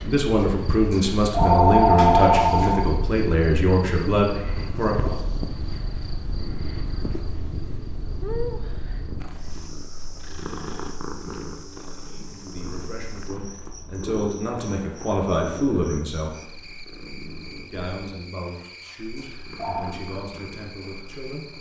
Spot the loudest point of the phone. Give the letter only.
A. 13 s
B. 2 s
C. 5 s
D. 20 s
B.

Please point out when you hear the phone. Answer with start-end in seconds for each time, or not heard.
0.9-2.8, 19.1-19.9.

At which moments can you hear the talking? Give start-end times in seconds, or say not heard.
0.0-5.2, 12.1-16.4, 17.6-21.5.